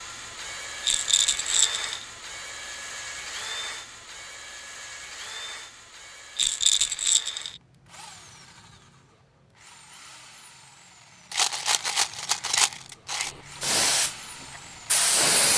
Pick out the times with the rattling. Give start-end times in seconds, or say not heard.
0.8-2.0, 6.3-7.5, 11.3-13.3.